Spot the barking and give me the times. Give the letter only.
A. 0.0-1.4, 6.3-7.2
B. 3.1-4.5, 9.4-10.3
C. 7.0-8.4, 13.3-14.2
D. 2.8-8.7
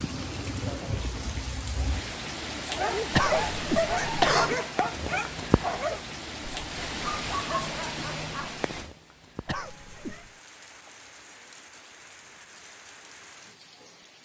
D.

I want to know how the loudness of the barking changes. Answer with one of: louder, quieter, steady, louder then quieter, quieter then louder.
quieter then louder.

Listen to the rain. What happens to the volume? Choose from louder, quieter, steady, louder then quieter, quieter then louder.
quieter.